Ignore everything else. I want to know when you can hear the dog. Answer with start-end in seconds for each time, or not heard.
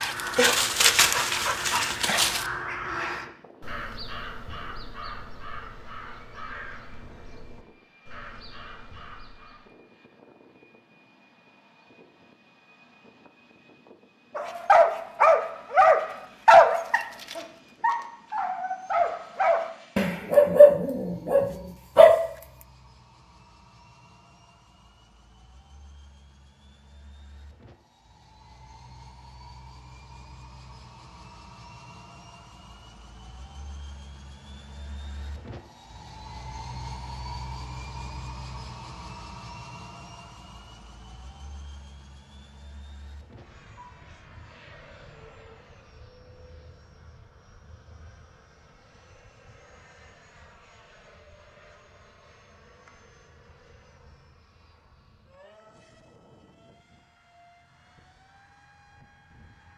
0.0-2.5, 14.3-22.2.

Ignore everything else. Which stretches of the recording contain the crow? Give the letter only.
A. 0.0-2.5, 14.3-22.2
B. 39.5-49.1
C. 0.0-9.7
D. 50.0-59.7
C.